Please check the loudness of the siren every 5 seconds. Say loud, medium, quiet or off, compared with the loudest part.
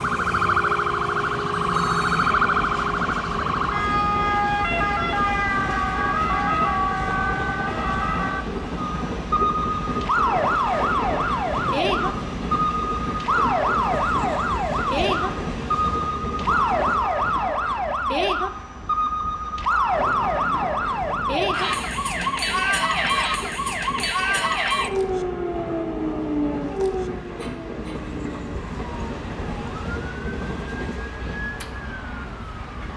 loud, loud, loud, loud, loud, medium, quiet.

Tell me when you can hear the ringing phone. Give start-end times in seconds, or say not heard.
1.6-2.4, 27.4-28.4.